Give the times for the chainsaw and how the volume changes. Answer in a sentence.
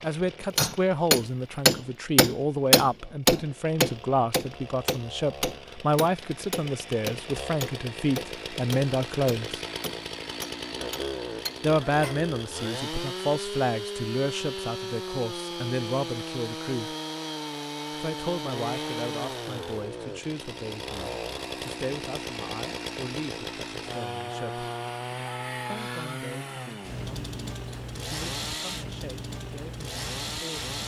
The chainsaw can be heard from 0.0 to 30.8 s, getting louder.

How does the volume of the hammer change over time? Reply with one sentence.
The loudness of the hammer goes down.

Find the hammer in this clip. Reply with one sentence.
The hammer can be heard from 0.6 to 12.2 s.